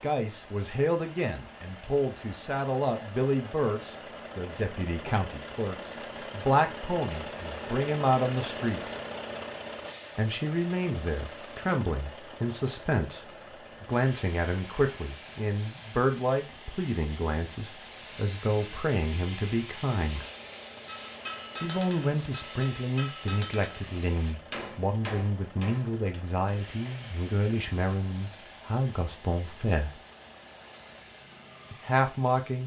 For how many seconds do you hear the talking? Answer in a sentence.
You can hear the talking for 28 seconds altogether.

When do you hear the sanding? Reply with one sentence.
The sanding can't be heard in this clip.